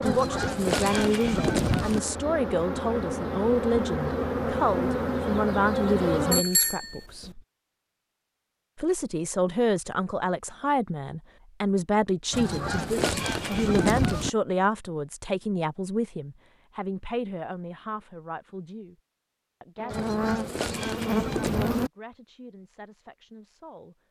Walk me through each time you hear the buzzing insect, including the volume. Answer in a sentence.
You can hear the buzzing insect from 0.0 to 6.5 s, getting louder; and briefly from 19.8 to 21.9 s.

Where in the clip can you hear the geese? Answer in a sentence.
You can hear the geese from 0.0 to 2.0 s, from 12.3 to 14.3 s and from 19.9 to 21.9 s.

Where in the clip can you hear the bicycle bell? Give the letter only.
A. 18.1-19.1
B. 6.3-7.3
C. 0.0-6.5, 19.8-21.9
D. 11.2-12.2
B.